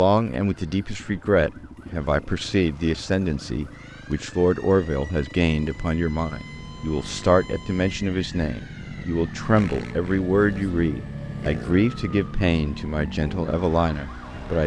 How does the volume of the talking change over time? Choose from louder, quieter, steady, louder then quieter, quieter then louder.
steady.